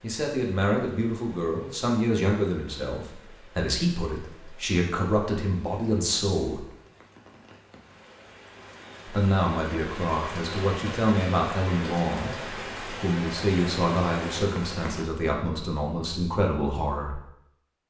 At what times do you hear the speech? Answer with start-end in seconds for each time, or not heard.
0.0-6.6, 9.1-17.2.